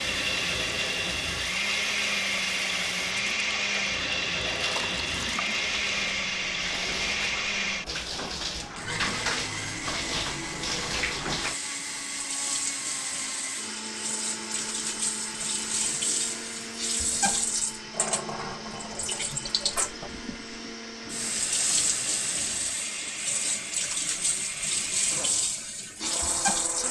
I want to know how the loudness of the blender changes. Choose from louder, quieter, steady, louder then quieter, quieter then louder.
quieter.